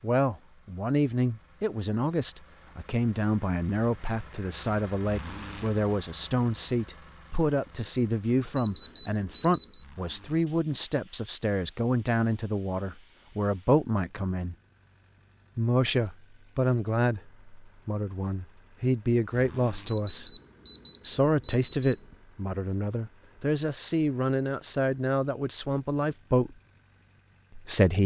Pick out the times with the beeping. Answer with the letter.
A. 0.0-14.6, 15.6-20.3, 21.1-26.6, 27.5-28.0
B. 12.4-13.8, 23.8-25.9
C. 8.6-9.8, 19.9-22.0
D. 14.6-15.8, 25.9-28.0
C.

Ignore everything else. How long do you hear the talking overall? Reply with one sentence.
The talking can be heard for 25 seconds in total.